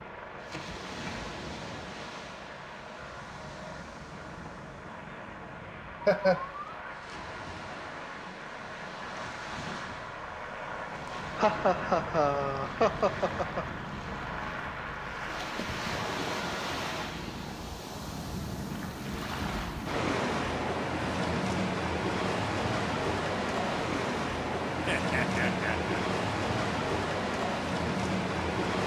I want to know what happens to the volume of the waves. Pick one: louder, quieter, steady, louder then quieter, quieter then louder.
louder.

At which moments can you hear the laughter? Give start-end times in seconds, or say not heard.
6.0-6.8, 11.3-13.7, 24.9-25.9.